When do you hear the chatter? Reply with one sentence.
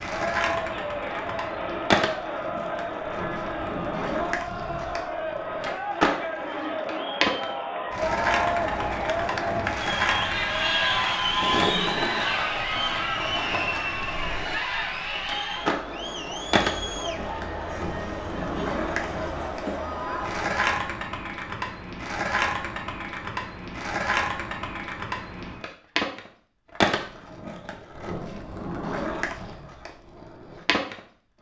You can hear the chatter from 0.0 to 20.6 s.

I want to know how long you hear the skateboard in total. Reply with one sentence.
You can hear the skateboard for 31 seconds altogether.